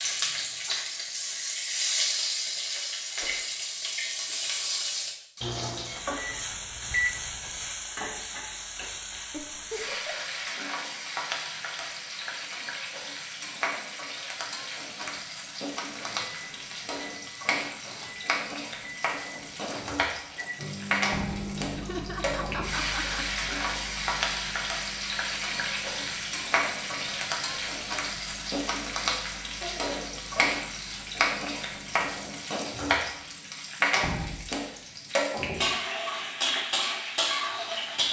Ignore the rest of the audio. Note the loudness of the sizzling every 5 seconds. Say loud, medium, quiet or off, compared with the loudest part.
loud, medium, medium, medium, loud, loud, loud, loud.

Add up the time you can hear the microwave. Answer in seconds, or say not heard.
19 s.